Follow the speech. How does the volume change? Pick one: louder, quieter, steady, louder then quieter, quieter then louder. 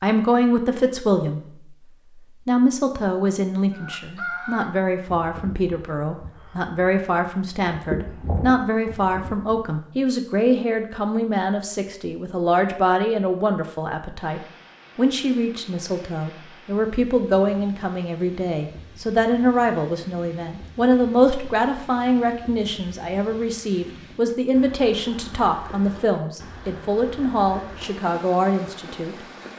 steady.